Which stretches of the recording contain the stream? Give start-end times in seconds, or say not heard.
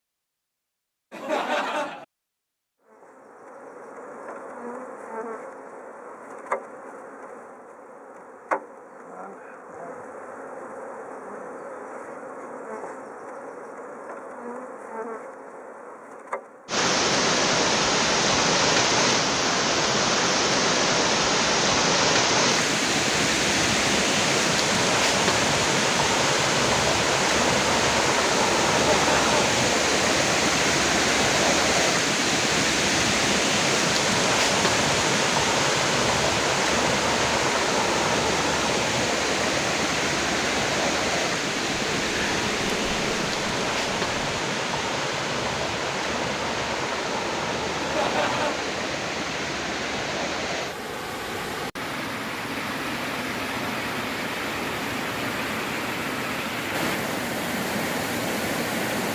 16.6-59.1.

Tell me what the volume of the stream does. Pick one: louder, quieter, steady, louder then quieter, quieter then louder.
quieter.